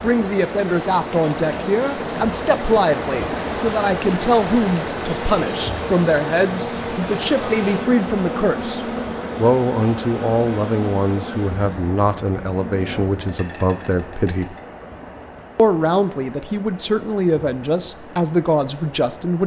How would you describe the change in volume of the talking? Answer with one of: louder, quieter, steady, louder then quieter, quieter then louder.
steady.